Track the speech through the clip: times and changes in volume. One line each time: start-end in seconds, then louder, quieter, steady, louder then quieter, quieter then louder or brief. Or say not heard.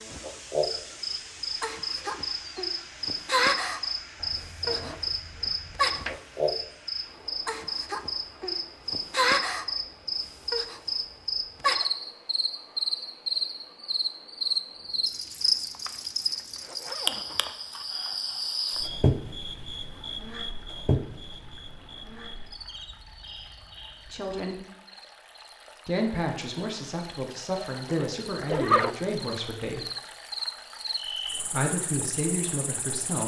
24.1-24.6 brief
25.9-29.9 steady
31.5-33.2 brief.